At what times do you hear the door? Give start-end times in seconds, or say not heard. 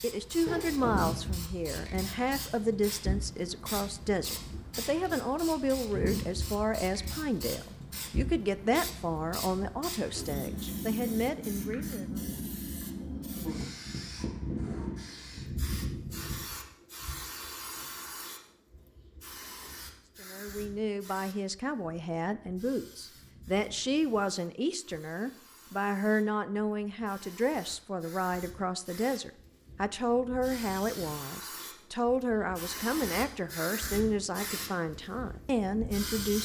0.5-1.4.